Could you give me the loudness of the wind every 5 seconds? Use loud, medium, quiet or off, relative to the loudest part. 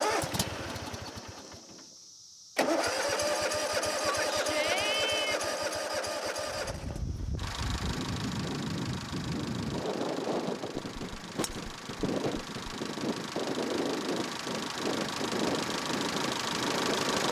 off, loud, loud, loud.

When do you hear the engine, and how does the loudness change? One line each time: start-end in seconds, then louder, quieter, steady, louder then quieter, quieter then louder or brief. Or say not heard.
0.0-17.2 quieter then louder.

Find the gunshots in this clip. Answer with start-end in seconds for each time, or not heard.
10.8-12.8.